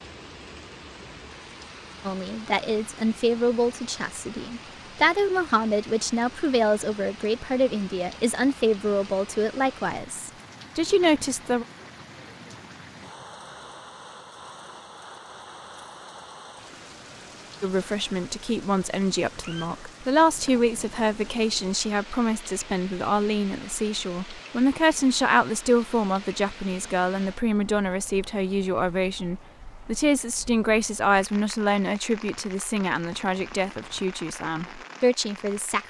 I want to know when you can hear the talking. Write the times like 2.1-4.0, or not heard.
2.0-11.7, 17.6-35.8.